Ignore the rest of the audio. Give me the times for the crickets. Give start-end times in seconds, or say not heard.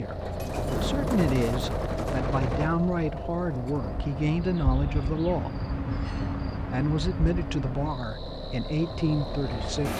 3.5-9.7.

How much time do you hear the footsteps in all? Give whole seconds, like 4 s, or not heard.
not heard.